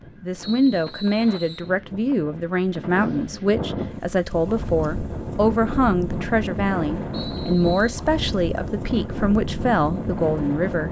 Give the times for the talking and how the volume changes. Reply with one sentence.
The talking can be heard from 0.2 to 10.8 s, at a steady volume.